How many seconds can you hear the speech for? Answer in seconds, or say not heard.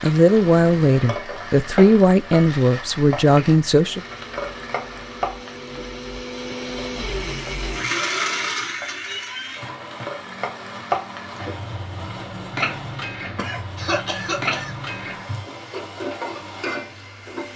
4 s.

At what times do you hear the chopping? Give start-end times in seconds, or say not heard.
not heard.